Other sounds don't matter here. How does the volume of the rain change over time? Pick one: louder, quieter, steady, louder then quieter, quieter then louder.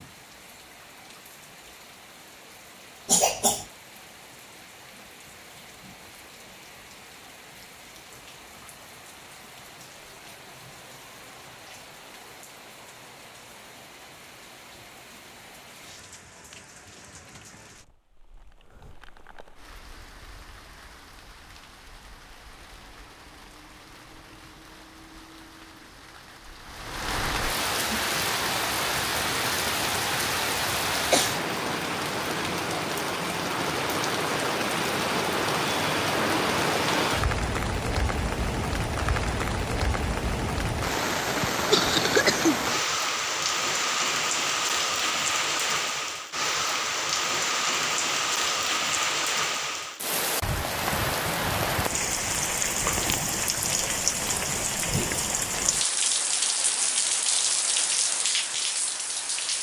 louder.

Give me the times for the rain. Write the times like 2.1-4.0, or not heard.
0.0-59.5.